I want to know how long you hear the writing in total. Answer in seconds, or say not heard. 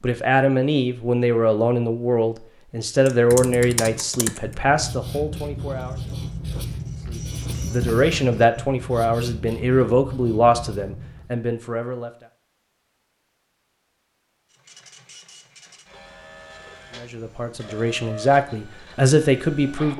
8 s.